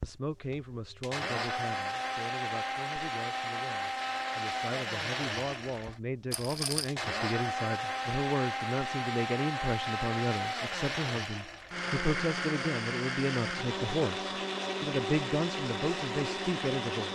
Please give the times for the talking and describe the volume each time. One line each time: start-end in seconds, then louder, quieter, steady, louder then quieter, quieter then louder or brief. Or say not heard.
0.0-17.1 louder.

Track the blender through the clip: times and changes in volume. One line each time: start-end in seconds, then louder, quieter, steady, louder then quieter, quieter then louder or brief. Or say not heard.
0.0-17.1 steady.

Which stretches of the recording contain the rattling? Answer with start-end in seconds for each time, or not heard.
6.3-7.0.